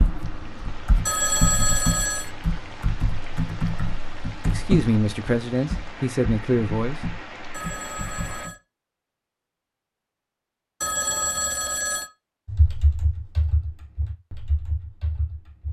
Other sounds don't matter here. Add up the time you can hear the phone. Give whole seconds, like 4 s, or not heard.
4 s.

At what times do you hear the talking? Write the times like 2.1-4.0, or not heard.
4.5-7.0.